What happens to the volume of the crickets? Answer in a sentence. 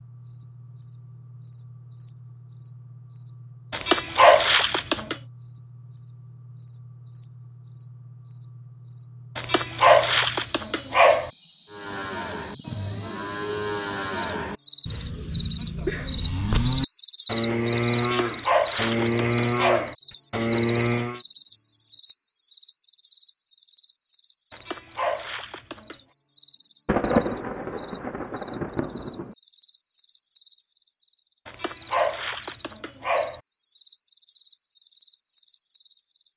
The loudness of the crickets goes up, then down.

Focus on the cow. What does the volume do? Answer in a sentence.
The loudness of the cow goes up.